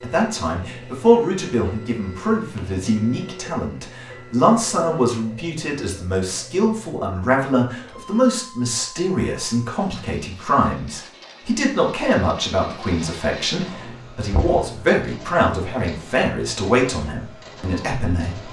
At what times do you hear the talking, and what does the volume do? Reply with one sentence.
You can hear the talking from 0.0 to 18.4 s, at a steady volume.